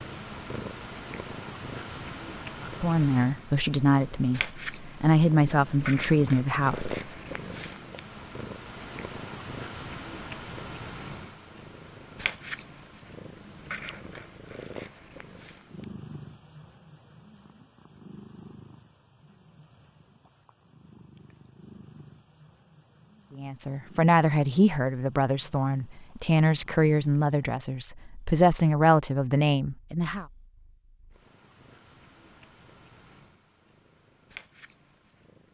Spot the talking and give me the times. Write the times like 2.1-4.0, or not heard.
2.6-7.1, 23.4-30.2.